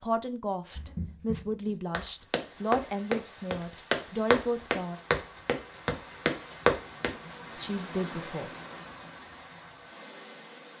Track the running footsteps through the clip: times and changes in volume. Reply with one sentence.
You can hear the running footsteps from 0.8 to 7.2 s, getting louder.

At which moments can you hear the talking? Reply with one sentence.
You can hear the talking from 0.0 to 5.0 s and from 7.5 to 8.5 s.